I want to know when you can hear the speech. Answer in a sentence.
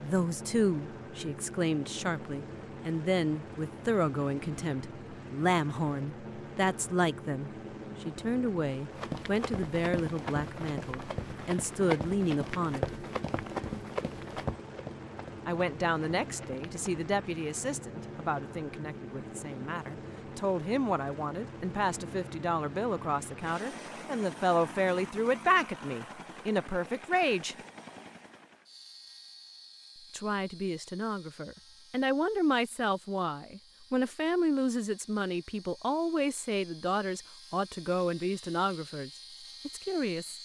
The speech can be heard from 0.0 to 12.9 s, from 15.4 to 27.6 s and from 30.1 to 40.4 s.